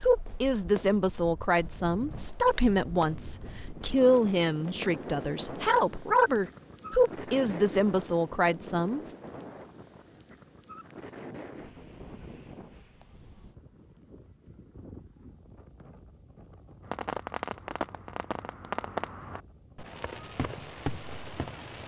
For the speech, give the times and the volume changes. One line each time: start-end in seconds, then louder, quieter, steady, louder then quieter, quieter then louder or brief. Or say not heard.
0.0-9.2 steady.